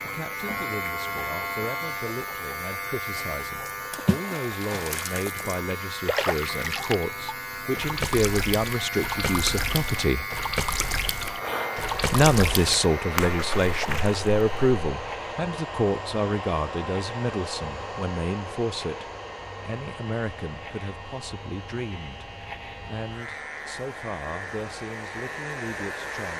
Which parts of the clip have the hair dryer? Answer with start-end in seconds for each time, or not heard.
11.3-26.3.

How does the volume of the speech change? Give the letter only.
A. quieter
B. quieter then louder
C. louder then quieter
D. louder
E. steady
C.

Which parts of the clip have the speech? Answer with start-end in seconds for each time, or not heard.
0.0-10.2, 12.1-26.3.